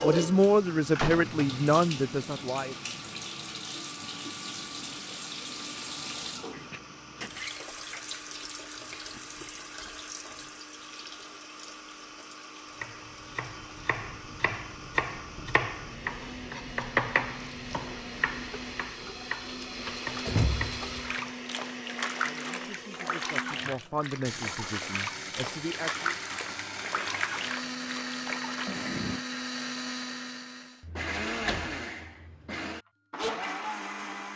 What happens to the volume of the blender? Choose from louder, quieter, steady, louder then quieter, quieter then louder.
louder.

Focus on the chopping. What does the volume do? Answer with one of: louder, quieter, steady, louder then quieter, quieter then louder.
louder then quieter.